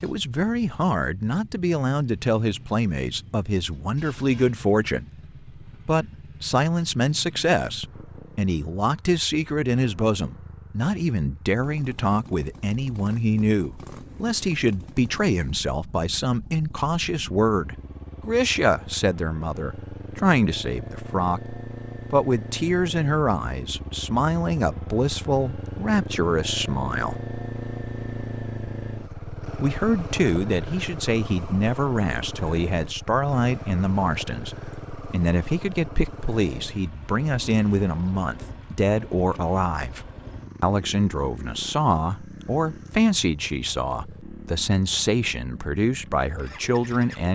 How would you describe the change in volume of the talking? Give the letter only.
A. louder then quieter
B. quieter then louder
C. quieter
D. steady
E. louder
D.